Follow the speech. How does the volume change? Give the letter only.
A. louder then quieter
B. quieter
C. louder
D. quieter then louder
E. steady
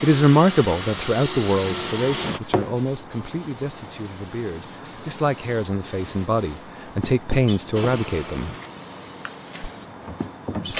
D.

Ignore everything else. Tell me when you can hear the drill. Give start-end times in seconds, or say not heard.
0.0-2.4, 7.7-10.7.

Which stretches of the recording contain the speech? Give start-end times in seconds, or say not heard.
0.0-8.5.